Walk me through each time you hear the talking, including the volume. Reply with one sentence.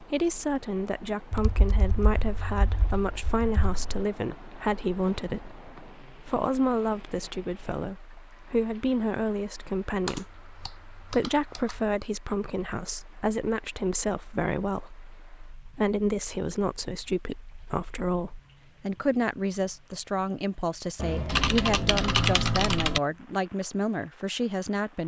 You can hear the talking from 0.0 to 25.0 s, at a steady volume.